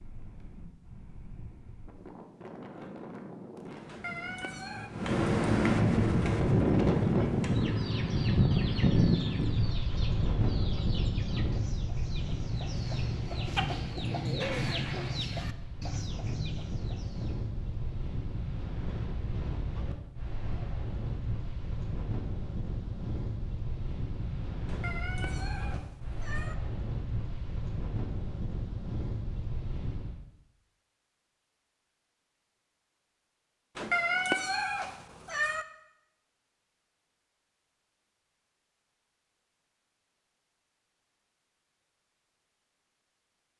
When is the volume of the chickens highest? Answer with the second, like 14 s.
14 s.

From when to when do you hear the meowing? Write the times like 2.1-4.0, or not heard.
3.9-4.9, 24.6-26.6, 33.8-35.6.